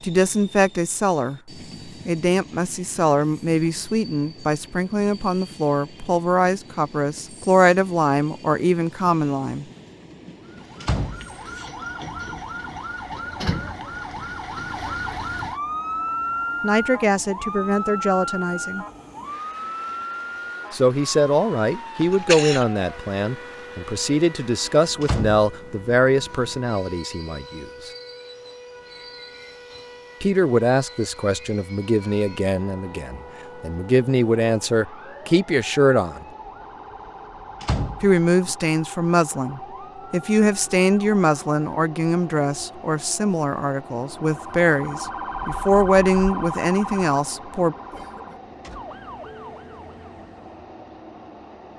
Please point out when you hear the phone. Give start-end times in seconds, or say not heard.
not heard.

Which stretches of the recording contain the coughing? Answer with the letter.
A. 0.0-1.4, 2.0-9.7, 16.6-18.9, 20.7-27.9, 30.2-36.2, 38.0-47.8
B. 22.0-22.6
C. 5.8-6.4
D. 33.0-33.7
B.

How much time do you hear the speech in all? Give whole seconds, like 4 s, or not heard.
34 s.